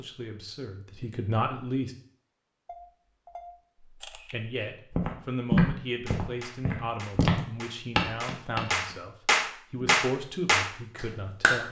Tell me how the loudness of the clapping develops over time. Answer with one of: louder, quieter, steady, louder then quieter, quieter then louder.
louder.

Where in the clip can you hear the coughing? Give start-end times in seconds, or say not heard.
not heard.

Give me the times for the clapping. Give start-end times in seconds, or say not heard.
6.0-11.6.